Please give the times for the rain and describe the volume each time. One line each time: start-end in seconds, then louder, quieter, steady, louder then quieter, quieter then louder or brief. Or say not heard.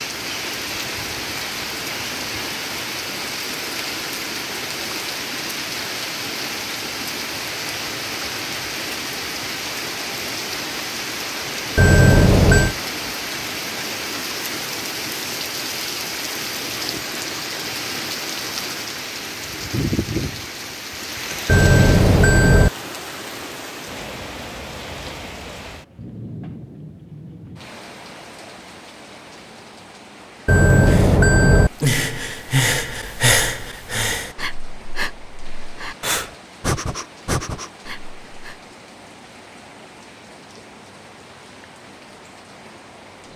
0.0-43.3 quieter.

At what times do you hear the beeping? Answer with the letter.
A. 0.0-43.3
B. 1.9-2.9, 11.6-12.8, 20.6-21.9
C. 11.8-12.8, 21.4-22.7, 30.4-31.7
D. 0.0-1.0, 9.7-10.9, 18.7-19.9
C.